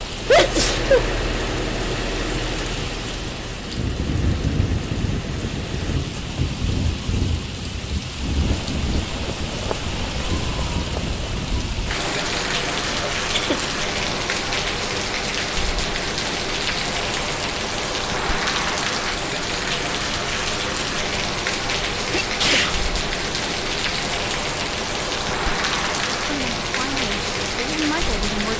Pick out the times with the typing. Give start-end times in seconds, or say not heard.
not heard.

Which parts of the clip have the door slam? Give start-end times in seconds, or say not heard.
not heard.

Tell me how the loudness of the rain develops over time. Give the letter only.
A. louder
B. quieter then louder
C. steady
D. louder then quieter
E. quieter
C.